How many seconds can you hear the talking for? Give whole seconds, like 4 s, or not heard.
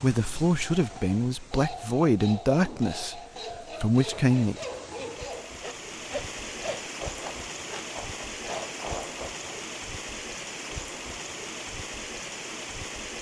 4 s.